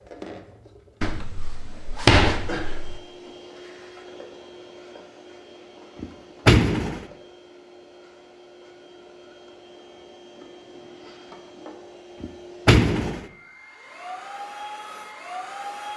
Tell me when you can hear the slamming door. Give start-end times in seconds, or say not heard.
1.0-3.0, 6.0-7.0, 12.2-13.2.